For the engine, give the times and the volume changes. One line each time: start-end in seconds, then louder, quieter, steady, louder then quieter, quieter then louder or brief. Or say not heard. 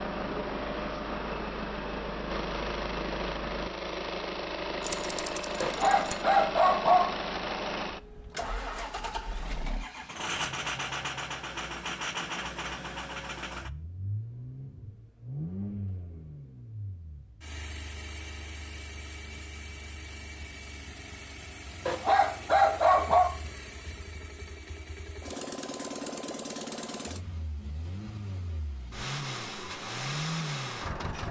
0.0-31.2 quieter then louder.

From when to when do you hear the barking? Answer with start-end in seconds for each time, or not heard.
5.6-7.2, 21.9-23.4.